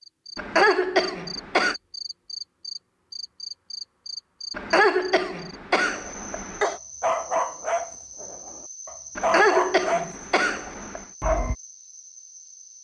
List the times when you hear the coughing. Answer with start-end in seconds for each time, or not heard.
0.3-1.8, 4.5-6.8, 9.2-11.1.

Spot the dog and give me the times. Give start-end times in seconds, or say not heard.
5.9-11.6.